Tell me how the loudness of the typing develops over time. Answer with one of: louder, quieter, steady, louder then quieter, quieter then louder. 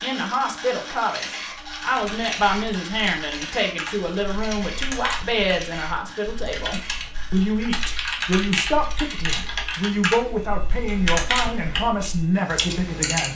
louder.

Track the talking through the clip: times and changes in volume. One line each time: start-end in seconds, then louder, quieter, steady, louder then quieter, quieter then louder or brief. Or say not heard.
0.0-13.3 steady.